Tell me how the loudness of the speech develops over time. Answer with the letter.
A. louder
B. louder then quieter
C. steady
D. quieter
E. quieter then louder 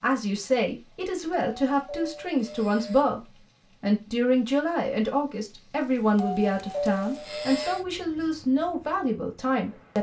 C.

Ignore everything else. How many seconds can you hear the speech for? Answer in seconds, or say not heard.
9 s.